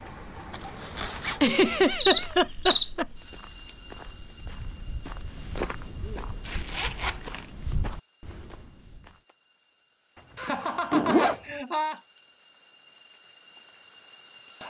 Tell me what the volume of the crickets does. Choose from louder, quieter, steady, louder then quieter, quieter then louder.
quieter then louder.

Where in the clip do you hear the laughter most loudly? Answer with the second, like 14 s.
2 s.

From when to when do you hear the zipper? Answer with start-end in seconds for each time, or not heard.
0.5-1.4, 6.5-7.5, 10.4-11.4.